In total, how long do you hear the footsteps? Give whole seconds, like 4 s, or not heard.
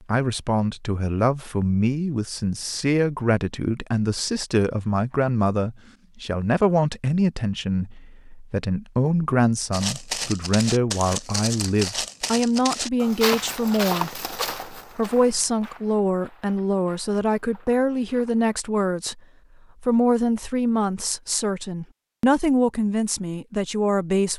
9 s.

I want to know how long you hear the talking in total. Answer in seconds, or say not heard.
24 s.